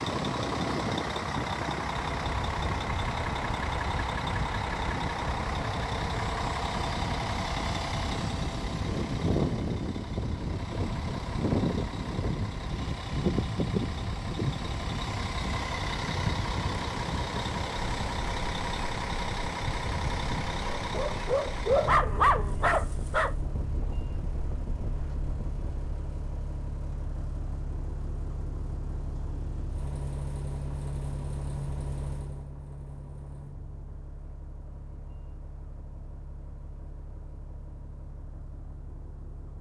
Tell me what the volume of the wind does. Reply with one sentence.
The volume of the wind goes down.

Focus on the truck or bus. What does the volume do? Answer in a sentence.
The loudness of the truck or bus goes down.